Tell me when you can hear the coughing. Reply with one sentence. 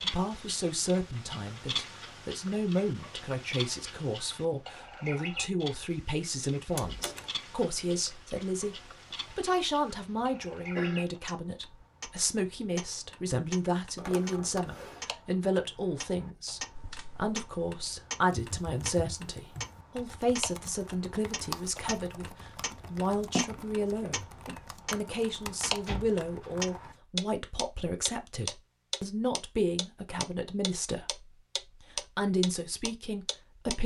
The coughing can be heard from 9.9 to 11.1 s and from 23.4 to 24.6 s.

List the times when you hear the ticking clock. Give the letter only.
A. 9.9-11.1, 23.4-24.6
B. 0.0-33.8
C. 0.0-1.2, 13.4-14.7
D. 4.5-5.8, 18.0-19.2
B.